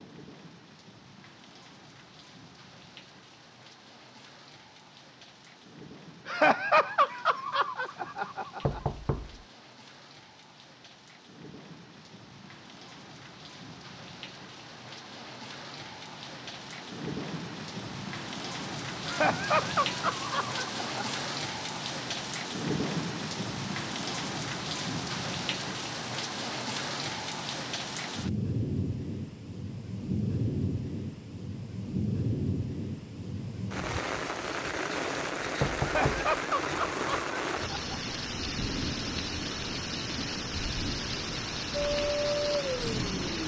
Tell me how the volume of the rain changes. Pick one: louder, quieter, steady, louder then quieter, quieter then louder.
louder.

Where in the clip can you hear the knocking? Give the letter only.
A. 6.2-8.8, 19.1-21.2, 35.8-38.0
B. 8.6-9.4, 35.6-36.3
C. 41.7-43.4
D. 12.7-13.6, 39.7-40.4
B.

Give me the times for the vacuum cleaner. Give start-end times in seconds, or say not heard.
41.7-43.4.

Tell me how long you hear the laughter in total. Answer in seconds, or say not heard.
7 s.